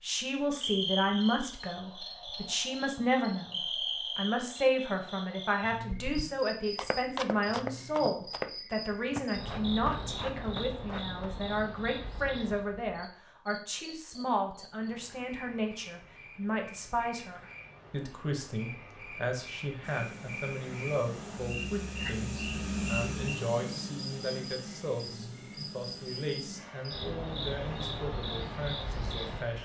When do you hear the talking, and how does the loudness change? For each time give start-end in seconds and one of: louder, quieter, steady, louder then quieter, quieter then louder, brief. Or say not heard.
0.0-29.6 quieter.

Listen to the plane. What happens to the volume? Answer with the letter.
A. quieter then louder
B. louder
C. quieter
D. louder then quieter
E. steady
D.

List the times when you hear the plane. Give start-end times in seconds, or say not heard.
19.8-29.6.